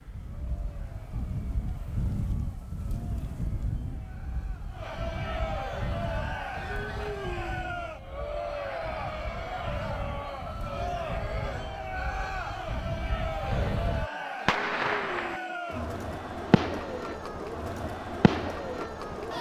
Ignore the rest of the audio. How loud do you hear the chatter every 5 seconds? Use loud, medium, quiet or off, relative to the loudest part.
quiet, loud, loud, loud.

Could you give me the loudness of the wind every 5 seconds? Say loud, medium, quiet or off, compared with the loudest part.
loud, loud, loud, off.